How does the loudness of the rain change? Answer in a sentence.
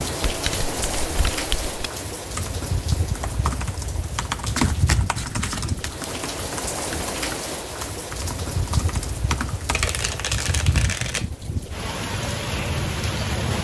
The volume of the rain stays about the same.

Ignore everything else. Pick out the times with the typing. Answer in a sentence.
The typing can be heard from 2.3 to 9.9 s.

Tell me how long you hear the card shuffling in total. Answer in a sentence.
The card shuffling can be heard for 5 seconds in total.